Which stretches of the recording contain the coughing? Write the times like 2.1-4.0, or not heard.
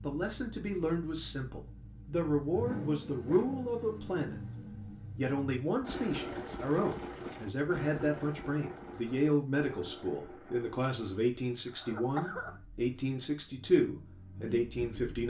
11.7-12.6.